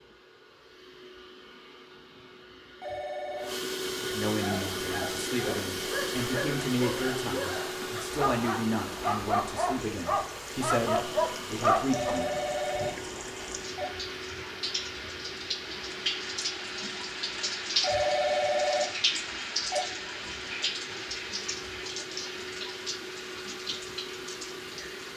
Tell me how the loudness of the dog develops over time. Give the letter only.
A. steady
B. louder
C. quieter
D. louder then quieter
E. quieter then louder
B.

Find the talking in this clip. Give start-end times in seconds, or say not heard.
4.0-12.3.